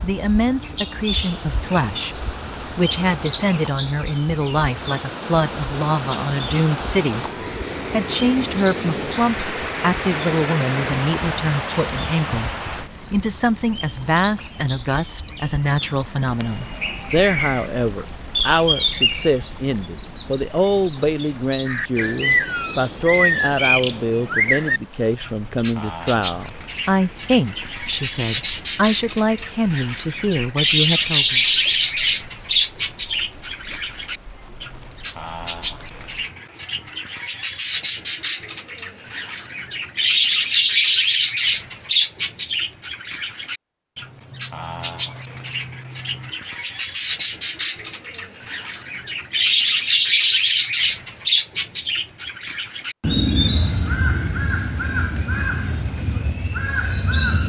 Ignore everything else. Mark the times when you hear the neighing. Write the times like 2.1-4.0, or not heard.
44.3-46.3.